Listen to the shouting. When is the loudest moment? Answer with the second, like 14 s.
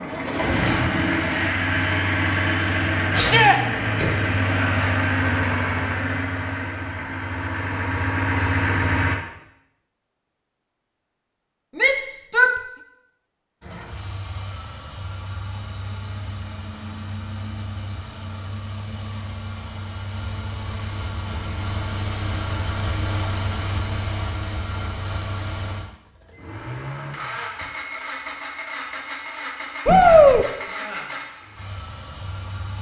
30 s.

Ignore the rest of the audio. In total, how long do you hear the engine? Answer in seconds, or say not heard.
28 s.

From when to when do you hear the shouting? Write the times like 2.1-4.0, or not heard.
3.1-3.6, 11.8-12.6, 29.9-30.4.